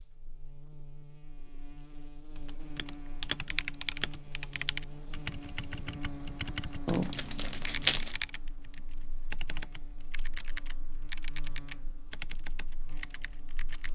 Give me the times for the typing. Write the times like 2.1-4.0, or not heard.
2.4-13.9.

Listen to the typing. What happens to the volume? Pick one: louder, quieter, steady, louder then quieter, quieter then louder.
quieter.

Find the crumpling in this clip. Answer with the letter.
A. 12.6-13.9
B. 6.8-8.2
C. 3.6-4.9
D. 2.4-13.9
B.